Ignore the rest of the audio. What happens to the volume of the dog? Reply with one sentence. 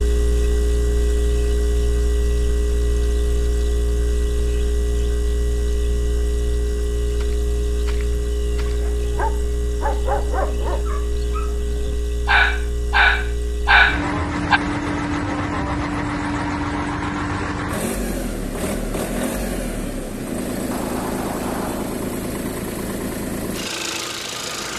The volume of the dog goes down, then up.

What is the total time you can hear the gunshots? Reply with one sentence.
You can hear the gunshots for 3 seconds altogether.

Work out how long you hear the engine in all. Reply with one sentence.
The engine can be heard for 25 seconds in total.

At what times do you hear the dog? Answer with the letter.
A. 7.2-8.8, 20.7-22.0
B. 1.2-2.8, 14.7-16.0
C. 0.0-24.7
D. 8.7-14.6
D.